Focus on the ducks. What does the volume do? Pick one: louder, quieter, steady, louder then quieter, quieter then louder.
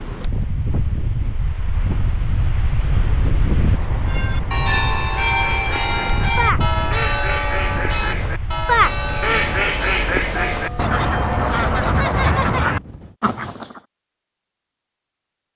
louder.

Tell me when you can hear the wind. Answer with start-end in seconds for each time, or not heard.
0.0-13.2.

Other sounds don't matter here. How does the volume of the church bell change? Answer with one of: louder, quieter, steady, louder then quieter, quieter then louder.
quieter.